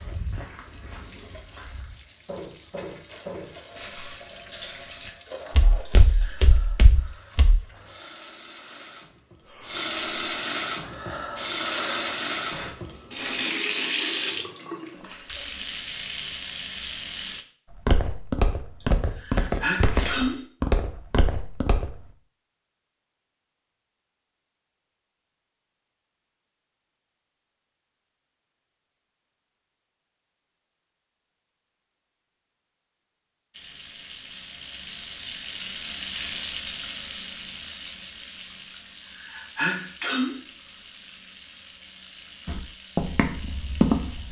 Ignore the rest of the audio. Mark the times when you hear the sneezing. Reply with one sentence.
The sneezing can be heard from 5.8 to 6.5 s, from 18.8 to 20.4 s and from 38.8 to 40.4 s.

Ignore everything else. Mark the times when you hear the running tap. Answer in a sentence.
You can hear the running tap from 0.0 to 17.4 s and from 33.5 to 44.2 s.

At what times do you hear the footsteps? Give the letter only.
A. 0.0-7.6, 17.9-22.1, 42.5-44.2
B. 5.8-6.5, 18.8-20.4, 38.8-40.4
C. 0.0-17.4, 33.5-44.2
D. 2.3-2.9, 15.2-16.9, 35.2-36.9
A.